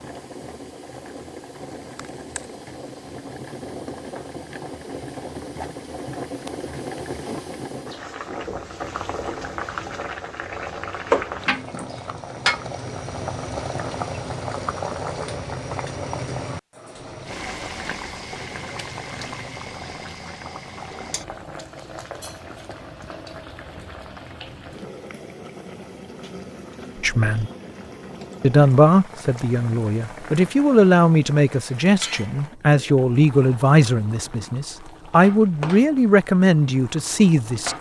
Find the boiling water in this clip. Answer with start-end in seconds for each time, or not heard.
0.0-37.7.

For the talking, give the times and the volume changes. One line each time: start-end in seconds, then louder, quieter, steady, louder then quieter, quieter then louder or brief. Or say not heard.
27.0-27.5 brief
28.4-37.7 steady.